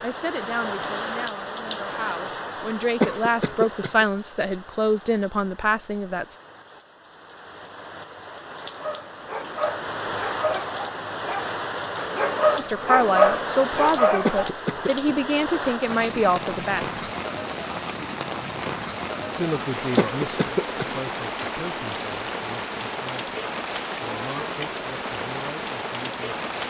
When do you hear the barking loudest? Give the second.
13 s.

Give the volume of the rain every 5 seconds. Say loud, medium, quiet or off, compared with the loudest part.
loud, medium, loud, loud, loud, loud.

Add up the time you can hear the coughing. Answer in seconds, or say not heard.
3 s.